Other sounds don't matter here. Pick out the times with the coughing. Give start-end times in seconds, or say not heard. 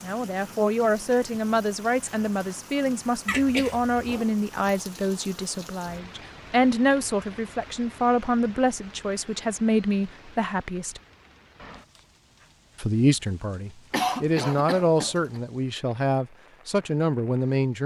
3.2-4.2, 13.9-15.4.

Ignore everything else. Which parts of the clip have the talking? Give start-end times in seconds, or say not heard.
0.0-11.0, 12.8-17.8.